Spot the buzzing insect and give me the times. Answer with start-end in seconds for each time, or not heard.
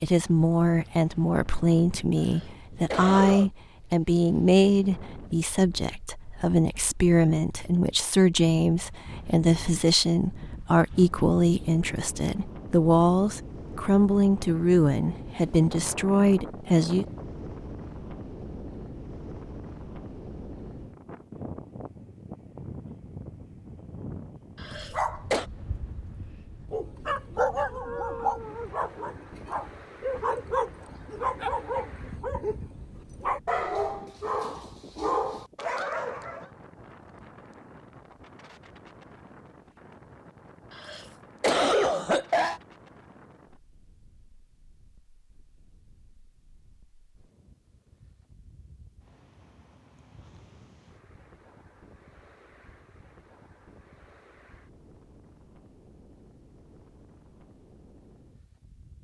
not heard.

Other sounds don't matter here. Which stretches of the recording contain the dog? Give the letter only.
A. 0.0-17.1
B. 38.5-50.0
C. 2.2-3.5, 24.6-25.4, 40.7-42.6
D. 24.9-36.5
D.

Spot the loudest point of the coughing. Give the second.
42 s.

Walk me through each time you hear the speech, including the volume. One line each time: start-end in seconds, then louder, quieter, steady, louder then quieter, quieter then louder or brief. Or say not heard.
0.0-17.1 steady.